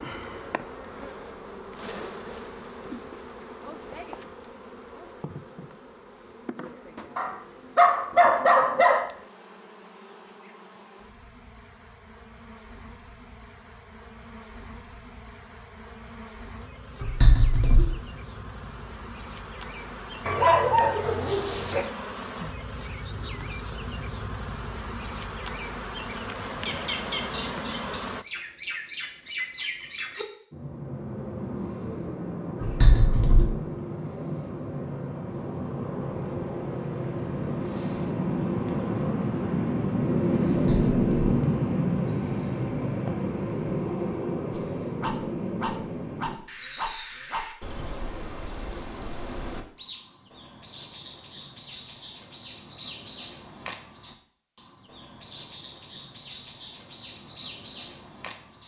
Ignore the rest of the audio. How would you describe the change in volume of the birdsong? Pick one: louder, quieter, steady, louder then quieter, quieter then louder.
louder then quieter.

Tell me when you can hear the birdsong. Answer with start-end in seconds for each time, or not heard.
26.4-58.6.